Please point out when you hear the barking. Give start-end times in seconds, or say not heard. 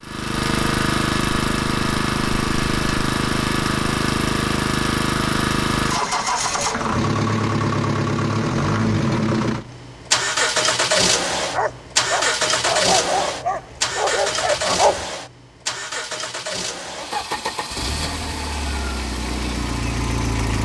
11.5-15.1.